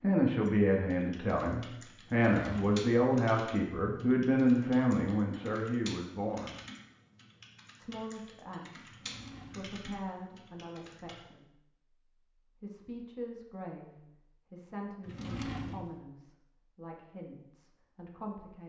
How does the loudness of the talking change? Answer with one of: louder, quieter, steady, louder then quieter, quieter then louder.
quieter.